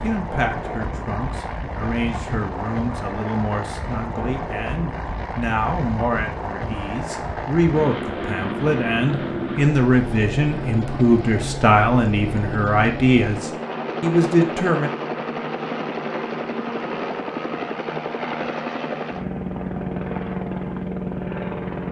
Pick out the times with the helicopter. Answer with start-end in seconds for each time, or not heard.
0.0-21.8.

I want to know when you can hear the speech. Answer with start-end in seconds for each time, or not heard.
0.0-14.9.